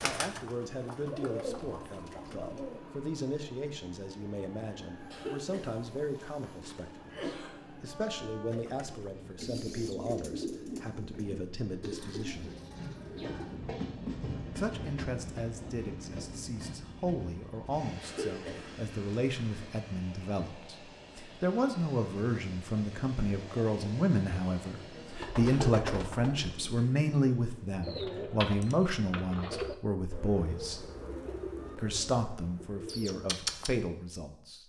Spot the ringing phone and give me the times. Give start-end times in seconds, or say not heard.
not heard.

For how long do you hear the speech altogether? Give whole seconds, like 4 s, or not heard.
32 s.